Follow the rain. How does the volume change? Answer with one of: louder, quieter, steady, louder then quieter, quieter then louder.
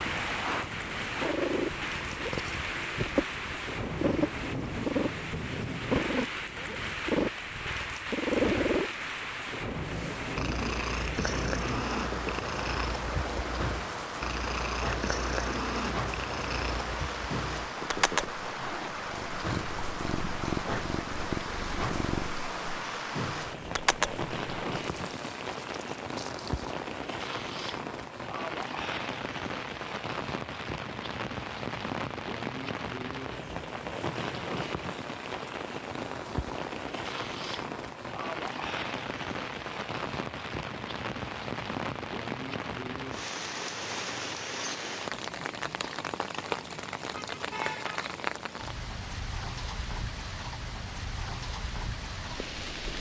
steady.